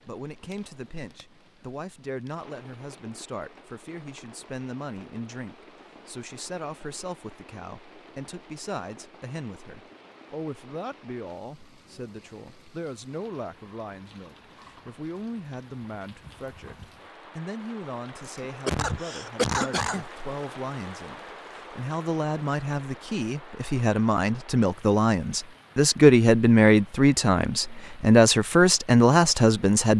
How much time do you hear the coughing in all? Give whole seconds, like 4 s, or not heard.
2 s.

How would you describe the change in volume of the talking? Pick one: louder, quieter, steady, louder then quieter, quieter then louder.
louder.